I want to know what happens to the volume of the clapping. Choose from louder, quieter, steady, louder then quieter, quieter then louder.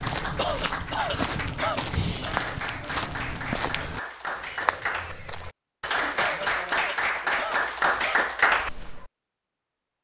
louder.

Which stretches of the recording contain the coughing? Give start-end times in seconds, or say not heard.
0.3-2.4, 6.2-8.2.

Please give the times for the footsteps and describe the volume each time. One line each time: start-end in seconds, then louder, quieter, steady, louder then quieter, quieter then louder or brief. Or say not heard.
0.0-5.5 steady.